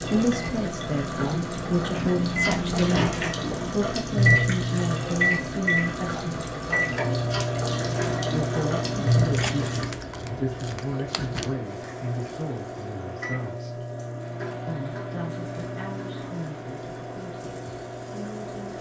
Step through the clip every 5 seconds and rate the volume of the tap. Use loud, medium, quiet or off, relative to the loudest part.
loud, loud, quiet, quiet.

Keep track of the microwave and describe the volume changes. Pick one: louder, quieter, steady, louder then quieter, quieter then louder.
quieter.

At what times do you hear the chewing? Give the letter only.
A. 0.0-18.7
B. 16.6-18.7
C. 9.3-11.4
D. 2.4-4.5
C.